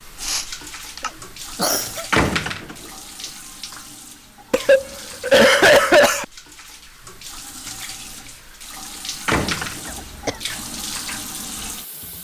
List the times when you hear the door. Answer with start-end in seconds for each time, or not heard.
2.1-2.9, 8.8-10.1.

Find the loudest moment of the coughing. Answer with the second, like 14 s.
6 s.